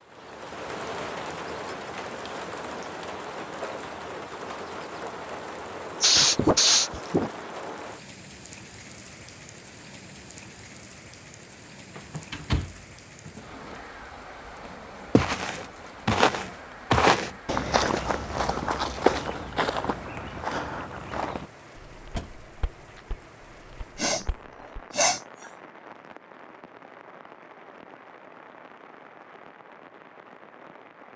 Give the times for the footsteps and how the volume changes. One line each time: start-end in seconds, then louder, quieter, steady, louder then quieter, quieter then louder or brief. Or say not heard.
15.2-24.8 quieter.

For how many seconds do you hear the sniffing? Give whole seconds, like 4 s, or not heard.
3 s.